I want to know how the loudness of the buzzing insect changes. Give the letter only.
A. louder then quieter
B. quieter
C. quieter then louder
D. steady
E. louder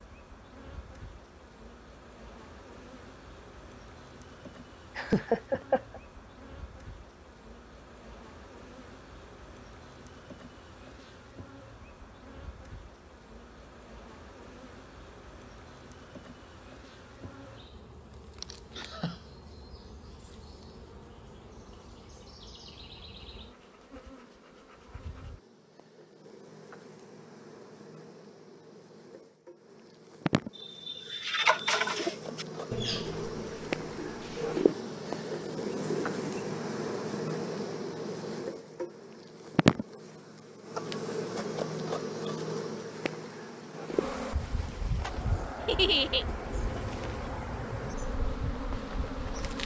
E.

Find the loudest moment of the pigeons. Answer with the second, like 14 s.
32 s.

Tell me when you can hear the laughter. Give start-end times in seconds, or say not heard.
5.0-6.0, 18.4-19.2, 45.6-46.2.